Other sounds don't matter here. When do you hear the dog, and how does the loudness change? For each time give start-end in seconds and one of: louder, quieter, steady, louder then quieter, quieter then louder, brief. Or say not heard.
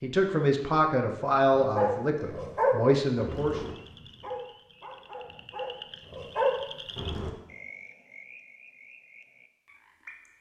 1.6-7.3 quieter then louder.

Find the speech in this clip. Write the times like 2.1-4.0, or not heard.
0.0-3.6.